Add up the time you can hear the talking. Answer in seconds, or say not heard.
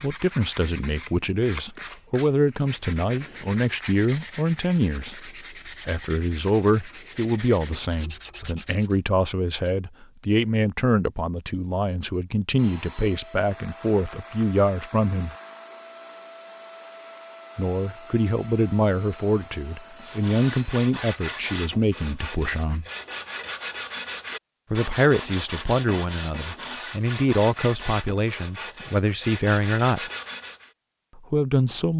27 s.